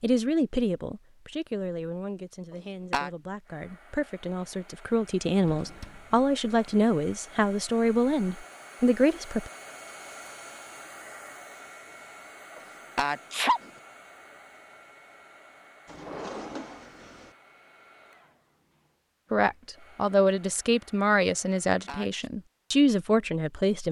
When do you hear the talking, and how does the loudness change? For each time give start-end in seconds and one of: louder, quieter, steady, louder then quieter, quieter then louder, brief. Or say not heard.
0.0-9.5 quieter then louder
19.3-23.8 quieter then louder.